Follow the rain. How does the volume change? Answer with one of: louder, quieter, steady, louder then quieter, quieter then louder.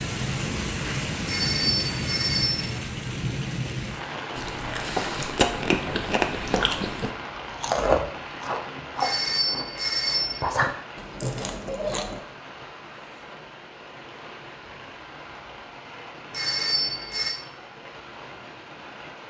quieter.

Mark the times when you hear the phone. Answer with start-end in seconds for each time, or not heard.
1.2-2.8, 8.9-10.5, 16.3-17.4.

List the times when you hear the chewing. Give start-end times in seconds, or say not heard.
4.3-12.2.